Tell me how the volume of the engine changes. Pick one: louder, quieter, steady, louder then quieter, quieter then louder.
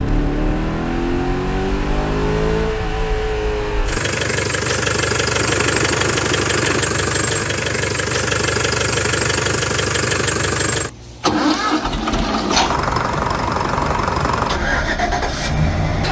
steady.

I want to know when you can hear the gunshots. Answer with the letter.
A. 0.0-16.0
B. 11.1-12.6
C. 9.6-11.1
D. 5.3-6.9
D.